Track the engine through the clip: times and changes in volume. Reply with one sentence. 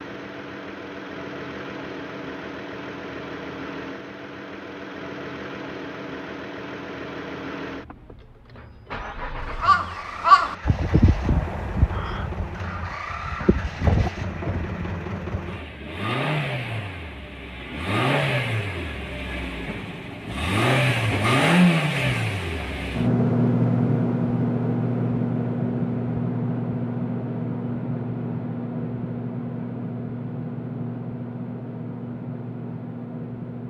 The engine can be heard from 0.0 to 33.6 s, getting louder then quieter.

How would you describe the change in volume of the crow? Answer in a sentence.
The loudness of the crow goes down, then up.